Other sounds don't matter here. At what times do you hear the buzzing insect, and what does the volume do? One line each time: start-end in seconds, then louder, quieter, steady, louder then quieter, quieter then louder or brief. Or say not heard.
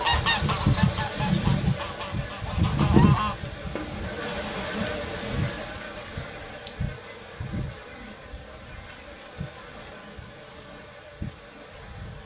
0.0-12.2 quieter.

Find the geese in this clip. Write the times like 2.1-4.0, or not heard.
0.0-4.8.